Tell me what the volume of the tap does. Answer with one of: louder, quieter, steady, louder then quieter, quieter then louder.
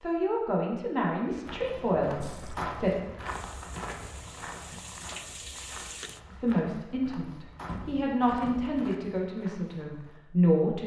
louder.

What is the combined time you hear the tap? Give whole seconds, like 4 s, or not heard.
4 s.